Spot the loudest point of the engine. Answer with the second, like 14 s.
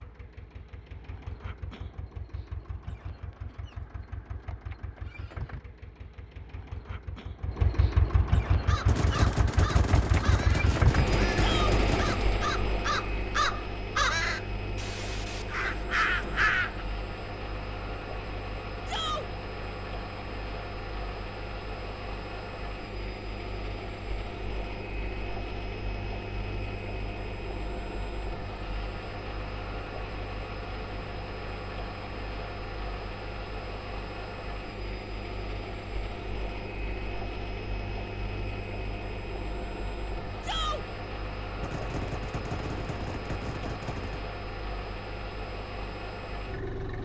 11 s.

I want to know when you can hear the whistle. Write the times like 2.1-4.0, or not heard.
not heard.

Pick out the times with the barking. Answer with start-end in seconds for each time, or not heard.
not heard.